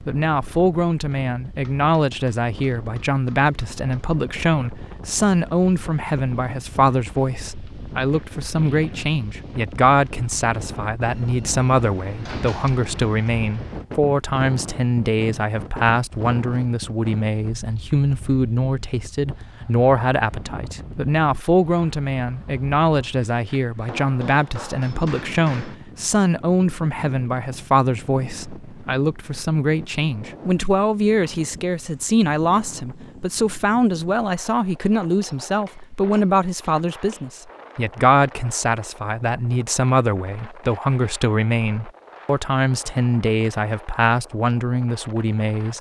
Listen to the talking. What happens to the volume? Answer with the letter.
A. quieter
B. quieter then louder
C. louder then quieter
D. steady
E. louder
D.